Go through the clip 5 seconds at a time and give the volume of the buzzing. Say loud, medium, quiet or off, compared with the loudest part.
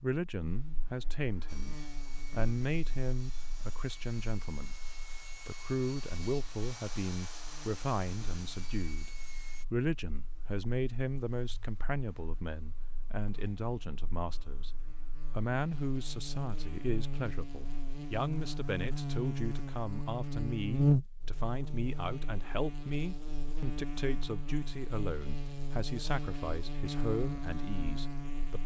quiet, quiet, quiet, medium, loud, medium.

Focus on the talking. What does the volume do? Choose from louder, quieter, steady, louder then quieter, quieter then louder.
steady.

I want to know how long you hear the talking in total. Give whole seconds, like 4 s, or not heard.
28 s.